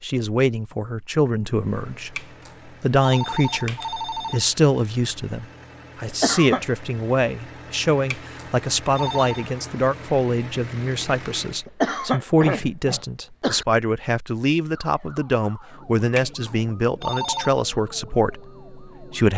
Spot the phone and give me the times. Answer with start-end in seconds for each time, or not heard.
2.1-4.5, 8.1-9.4, 16.1-17.6.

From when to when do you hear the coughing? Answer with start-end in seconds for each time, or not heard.
6.0-6.7, 11.7-13.7.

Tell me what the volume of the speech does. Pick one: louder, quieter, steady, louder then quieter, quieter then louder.
steady.